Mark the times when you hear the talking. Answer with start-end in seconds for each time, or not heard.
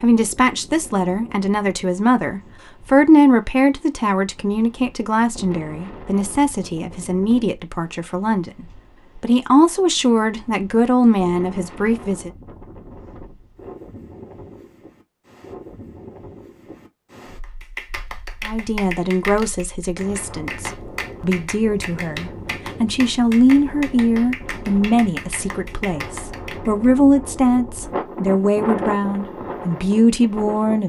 0.0-12.3, 18.4-30.8.